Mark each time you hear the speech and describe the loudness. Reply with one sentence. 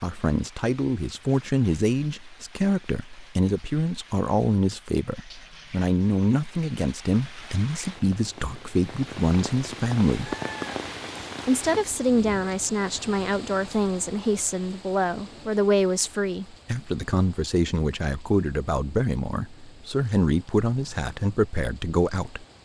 You can hear the speech from 0.0 to 10.3 s, at a steady volume; and from 11.4 to 22.4 s, at a steady volume.